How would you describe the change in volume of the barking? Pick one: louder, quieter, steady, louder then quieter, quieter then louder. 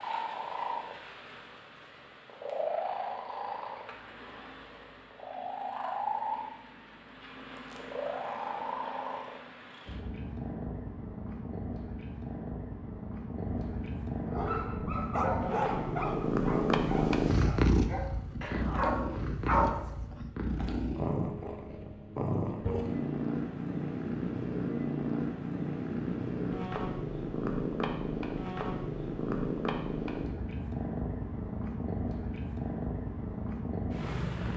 quieter then louder.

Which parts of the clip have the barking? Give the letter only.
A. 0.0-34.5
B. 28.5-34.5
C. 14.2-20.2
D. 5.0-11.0
C.